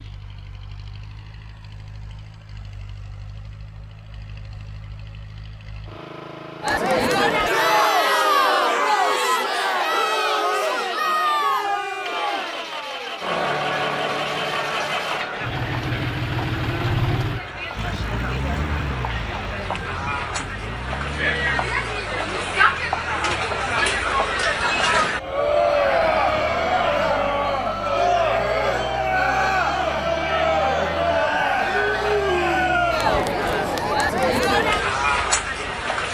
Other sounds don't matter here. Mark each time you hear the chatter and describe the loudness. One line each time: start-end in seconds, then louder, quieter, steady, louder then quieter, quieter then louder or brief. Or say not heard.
6.6-36.0 quieter then louder.